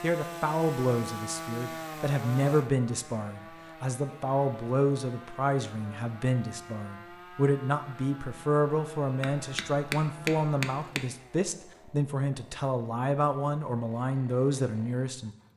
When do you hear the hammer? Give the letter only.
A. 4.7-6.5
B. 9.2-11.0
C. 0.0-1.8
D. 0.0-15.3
B.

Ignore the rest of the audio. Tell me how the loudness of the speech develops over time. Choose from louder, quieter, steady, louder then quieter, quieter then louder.
steady.